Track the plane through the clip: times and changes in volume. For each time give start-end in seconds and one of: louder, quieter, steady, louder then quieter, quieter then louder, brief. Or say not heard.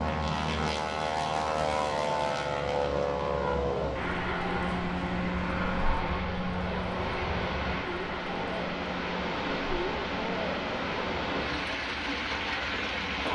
0.0-13.3 quieter.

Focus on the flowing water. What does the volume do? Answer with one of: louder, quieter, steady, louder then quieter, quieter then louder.
louder.